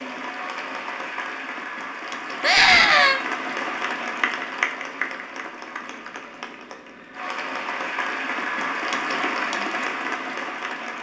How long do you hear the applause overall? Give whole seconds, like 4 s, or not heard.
11 s.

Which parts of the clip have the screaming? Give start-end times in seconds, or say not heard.
2.4-3.2.